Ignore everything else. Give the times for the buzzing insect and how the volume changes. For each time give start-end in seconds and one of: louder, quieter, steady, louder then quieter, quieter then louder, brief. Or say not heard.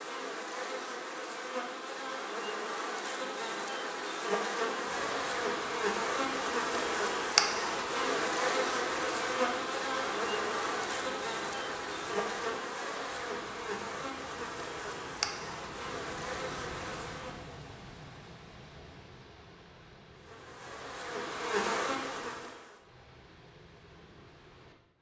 0.0-17.4 louder then quieter
20.1-22.9 brief.